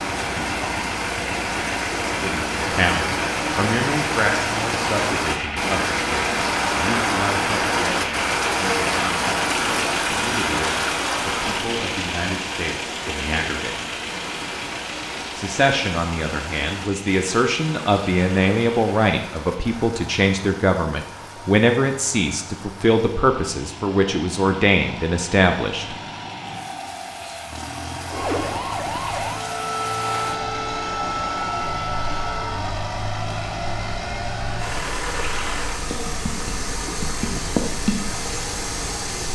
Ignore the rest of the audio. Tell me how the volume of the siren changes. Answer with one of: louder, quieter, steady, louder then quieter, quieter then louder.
steady.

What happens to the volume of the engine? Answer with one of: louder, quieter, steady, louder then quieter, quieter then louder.
quieter then louder.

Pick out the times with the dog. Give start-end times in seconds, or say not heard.
not heard.